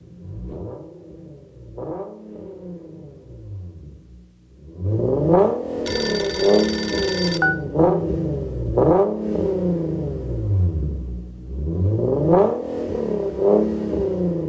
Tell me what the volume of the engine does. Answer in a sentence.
The loudness of the engine goes up.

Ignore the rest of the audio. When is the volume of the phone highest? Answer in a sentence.
The volume of the phone peaks at 7 seconds.